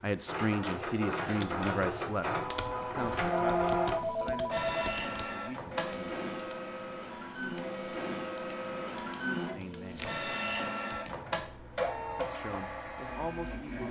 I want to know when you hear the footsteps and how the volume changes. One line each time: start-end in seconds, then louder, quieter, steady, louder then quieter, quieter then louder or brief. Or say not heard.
not heard.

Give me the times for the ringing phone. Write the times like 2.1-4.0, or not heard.
2.9-5.0.